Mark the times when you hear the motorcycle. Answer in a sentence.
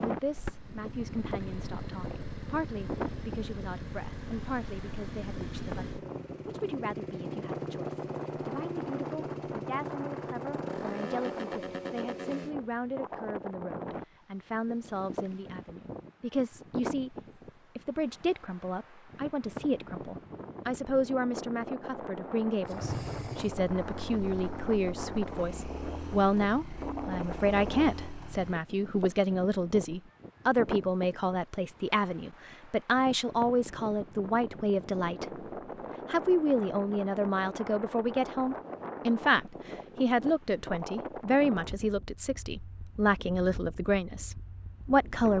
The motorcycle can be heard from 0.1 to 12.6 s and from 22.6 to 28.6 s.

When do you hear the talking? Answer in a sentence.
You can hear the talking from 0.0 to 17.1 s, from 17.8 to 35.2 s and from 36.1 to 45.3 s.